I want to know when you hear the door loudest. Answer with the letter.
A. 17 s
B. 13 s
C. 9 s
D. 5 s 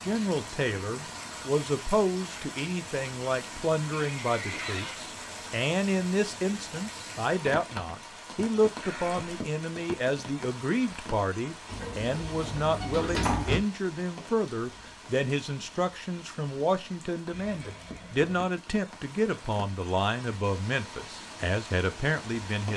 B.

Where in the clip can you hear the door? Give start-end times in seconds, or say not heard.
11.7-13.7.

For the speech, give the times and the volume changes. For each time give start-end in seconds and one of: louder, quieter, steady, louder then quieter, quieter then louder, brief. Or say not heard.
0.0-22.7 steady.